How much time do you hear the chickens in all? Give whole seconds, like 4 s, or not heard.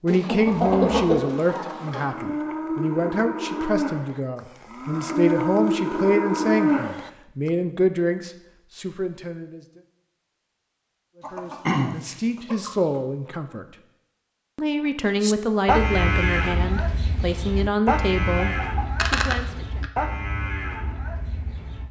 5 s.